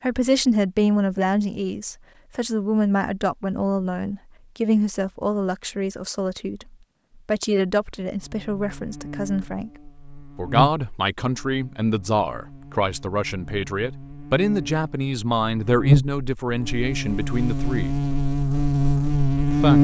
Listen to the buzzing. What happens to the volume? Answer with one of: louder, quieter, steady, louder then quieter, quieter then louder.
quieter then louder.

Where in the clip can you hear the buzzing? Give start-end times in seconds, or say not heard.
8.2-19.7.